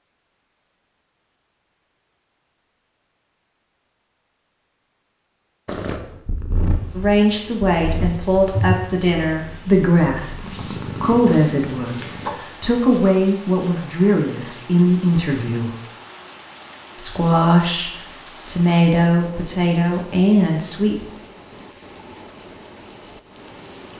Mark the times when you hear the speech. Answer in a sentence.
You can hear the speech from 7.0 to 15.8 s and from 16.9 to 21.1 s.